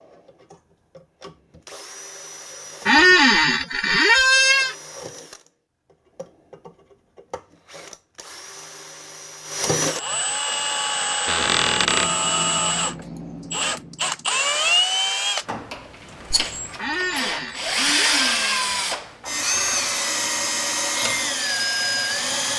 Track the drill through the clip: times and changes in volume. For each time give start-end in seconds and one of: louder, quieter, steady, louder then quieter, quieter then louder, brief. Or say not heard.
0.0-22.5 louder.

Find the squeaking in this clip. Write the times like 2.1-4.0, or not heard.
2.9-4.8, 11.2-12.1, 16.8-18.7.